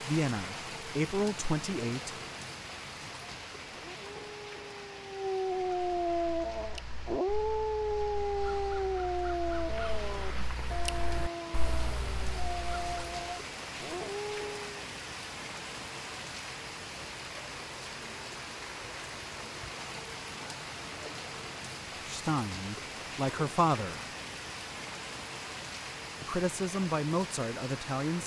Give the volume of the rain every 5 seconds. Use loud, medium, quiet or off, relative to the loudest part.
loud, medium, loud, loud, loud, loud.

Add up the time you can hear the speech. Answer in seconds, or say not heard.
6 s.